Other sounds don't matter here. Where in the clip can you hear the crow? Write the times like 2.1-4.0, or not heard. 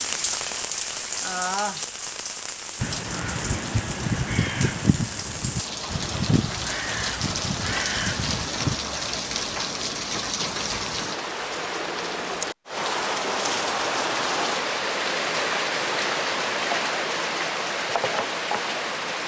2.8-8.8.